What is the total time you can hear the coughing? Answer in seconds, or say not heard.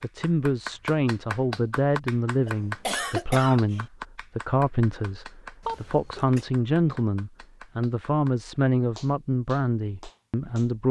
2 s.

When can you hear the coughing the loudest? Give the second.
3 s.